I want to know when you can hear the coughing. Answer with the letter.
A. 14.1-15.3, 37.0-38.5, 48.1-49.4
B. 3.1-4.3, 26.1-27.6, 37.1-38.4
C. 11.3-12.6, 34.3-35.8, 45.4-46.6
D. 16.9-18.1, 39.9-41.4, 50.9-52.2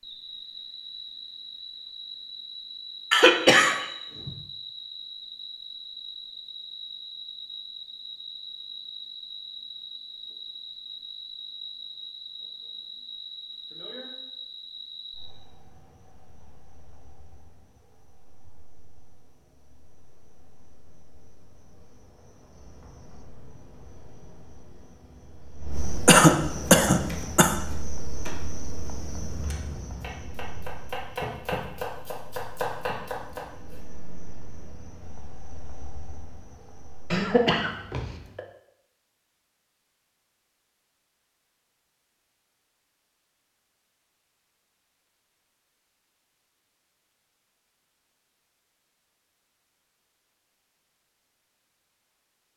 B.